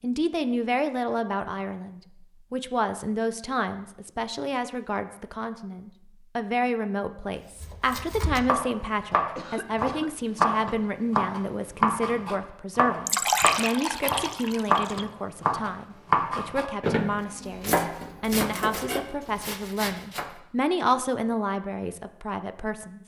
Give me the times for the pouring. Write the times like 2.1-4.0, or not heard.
13.1-15.1.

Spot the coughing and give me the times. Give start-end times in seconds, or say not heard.
9.3-10.2.